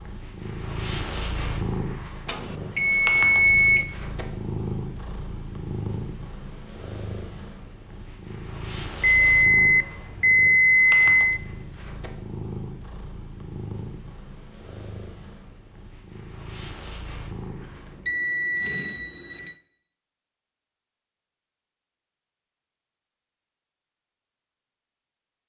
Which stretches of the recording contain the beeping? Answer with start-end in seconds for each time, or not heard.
2.2-3.9, 9.0-11.4, 17.6-19.6.